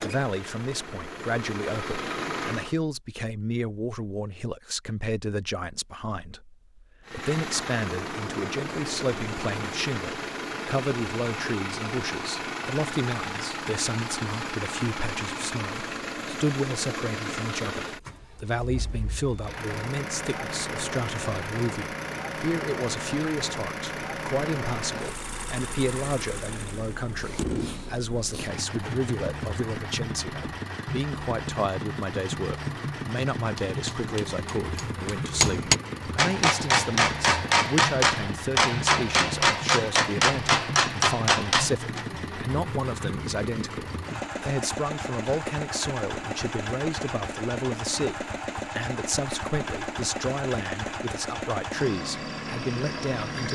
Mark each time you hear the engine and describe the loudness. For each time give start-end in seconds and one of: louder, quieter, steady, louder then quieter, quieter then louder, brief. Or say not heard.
0.0-2.8 brief
7.0-53.5 steady.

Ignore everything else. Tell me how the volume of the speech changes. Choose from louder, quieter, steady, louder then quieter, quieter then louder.
steady.